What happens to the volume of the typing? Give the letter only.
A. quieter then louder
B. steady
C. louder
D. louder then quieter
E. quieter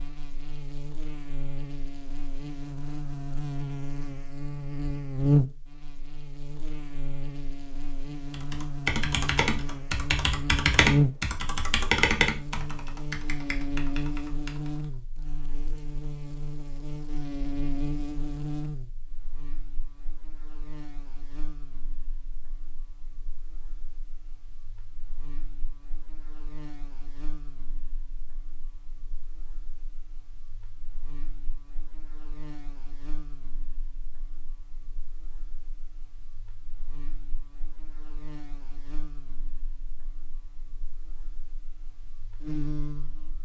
E.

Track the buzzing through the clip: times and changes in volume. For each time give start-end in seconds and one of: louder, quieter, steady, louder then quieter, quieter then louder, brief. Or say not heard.
0.0-43.4 quieter then louder.